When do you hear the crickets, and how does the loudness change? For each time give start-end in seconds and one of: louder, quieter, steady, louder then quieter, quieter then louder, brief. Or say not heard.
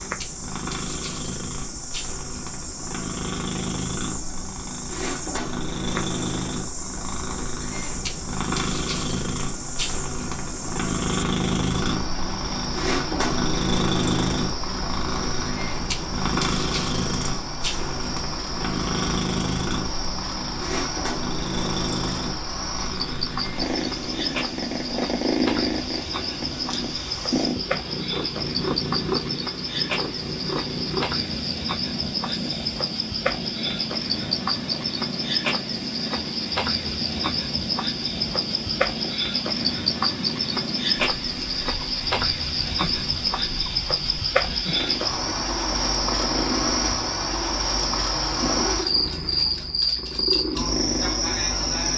0.0-51.9 louder.